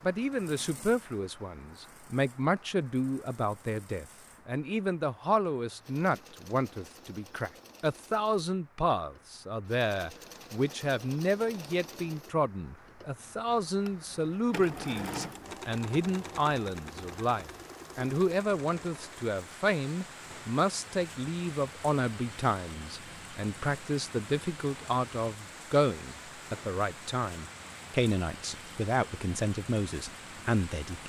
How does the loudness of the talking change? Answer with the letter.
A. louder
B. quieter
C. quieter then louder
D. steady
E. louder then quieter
D.